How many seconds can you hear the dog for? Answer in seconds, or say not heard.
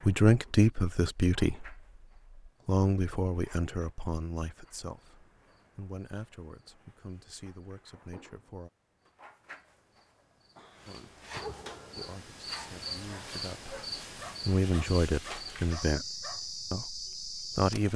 5 s.